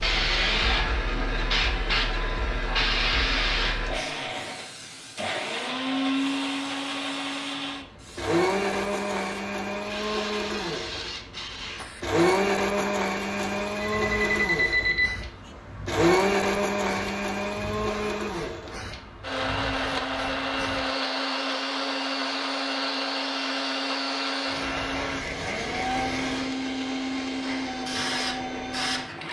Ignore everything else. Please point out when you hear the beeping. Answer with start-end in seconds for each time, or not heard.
13.8-15.3.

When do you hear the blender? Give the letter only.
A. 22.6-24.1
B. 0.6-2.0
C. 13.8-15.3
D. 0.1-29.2
D.